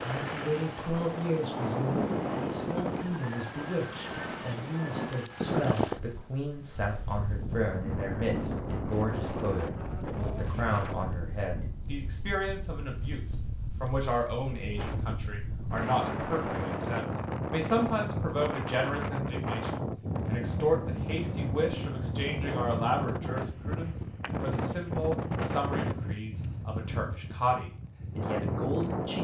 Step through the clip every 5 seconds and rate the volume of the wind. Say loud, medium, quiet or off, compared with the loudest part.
loud, loud, medium, loud, loud, loud.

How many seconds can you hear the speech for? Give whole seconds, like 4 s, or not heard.
29 s.